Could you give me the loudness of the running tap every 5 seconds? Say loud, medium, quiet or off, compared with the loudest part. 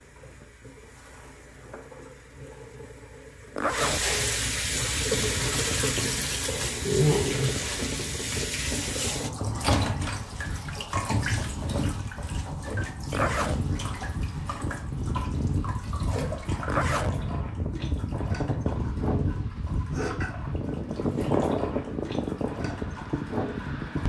medium, loud, medium, medium, medium.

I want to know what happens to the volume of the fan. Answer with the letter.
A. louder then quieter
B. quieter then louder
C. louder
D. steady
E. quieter
C.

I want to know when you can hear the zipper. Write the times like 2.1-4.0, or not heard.
3.5-4.0, 13.1-13.6, 16.6-17.1.